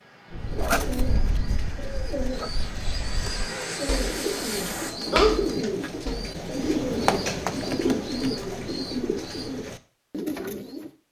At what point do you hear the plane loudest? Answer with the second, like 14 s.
4 s.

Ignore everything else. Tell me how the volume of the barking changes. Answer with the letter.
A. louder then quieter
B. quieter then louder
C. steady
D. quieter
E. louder
B.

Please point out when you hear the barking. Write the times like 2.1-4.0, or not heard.
0.3-6.3.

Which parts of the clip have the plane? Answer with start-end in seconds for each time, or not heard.
0.0-5.0.